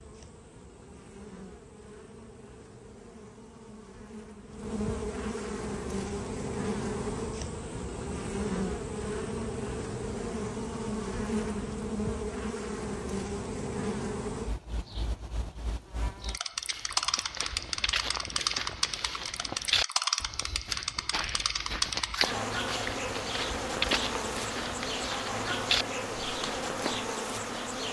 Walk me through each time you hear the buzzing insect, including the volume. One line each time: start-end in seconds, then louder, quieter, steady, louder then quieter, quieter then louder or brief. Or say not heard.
0.0-27.8 louder.